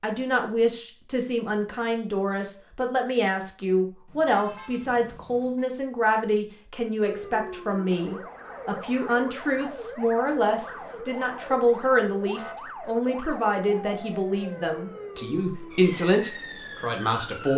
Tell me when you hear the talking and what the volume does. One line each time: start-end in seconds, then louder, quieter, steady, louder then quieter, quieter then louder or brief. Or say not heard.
0.0-17.5 steady.